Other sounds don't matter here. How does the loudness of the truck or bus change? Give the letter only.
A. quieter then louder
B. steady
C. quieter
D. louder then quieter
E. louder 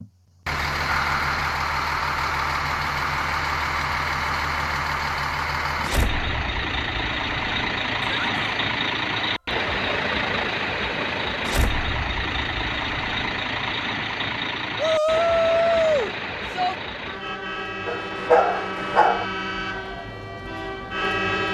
C.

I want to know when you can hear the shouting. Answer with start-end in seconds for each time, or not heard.
8.0-8.4, 14.8-16.8.